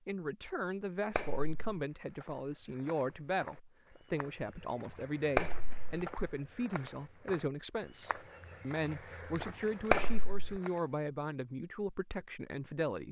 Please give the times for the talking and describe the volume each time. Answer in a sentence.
The talking can be heard from 0.1 to 13.0 s, at a steady volume.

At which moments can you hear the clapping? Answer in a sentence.
The clapping can be heard from 1.1 to 1.8 s, from 5.3 to 6.0 s and from 9.9 to 10.6 s.